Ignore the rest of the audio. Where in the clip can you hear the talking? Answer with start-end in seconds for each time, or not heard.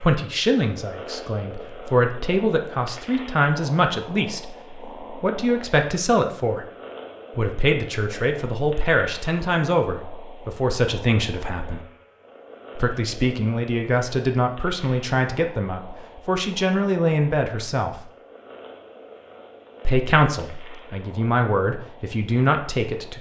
0.0-6.7, 7.3-11.8, 12.8-18.0, 19.9-23.1.